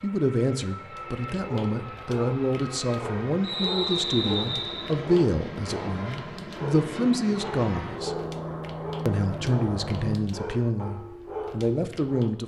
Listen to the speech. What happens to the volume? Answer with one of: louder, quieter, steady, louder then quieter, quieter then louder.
steady.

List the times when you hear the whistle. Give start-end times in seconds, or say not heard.
3.4-5.0.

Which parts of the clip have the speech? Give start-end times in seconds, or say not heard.
0.0-8.2, 9.1-12.4.